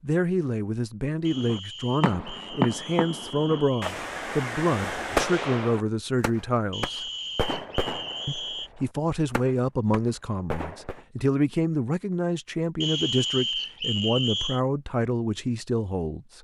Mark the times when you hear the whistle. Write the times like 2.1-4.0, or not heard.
1.2-4.0, 6.7-8.7, 12.8-14.6.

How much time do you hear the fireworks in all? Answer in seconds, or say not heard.
10 s.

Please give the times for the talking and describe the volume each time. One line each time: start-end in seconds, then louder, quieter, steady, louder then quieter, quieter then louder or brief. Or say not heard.
0.0-7.1 steady
8.2-16.3 steady.